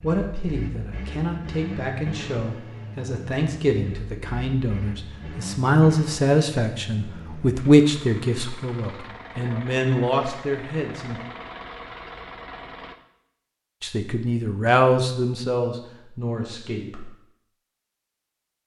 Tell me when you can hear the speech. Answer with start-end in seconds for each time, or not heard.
0.0-11.2, 13.8-17.1.